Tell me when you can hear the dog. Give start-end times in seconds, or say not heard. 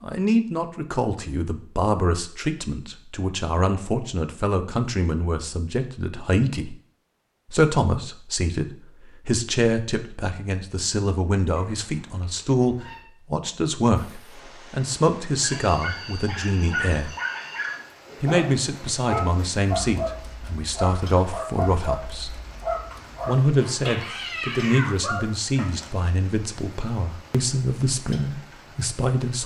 15.4-25.9.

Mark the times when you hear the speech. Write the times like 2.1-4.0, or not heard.
0.0-6.8, 7.5-17.1, 18.2-22.4, 23.2-29.4.